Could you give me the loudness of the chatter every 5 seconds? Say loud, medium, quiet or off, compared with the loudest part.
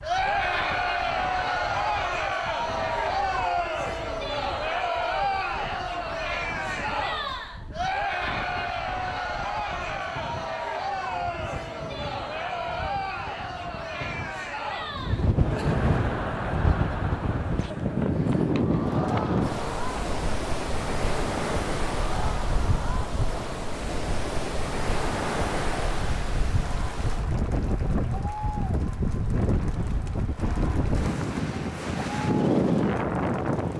loud, loud, medium, medium, medium, quiet, quiet.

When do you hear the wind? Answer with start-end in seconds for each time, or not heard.
0.0-33.7.